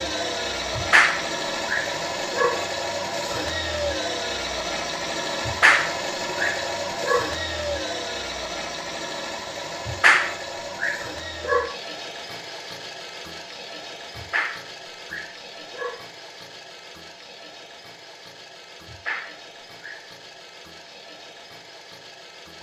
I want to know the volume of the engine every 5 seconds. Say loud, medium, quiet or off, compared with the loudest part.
loud, loud, medium, quiet, quiet.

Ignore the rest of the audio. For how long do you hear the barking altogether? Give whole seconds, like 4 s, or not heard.
9 s.